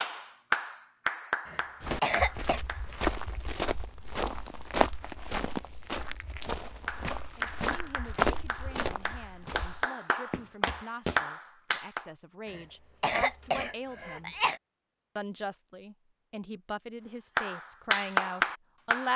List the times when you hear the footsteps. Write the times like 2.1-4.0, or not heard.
1.8-11.2.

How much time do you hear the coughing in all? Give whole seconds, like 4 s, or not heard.
3 s.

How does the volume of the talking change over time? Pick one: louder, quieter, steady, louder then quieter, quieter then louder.
louder.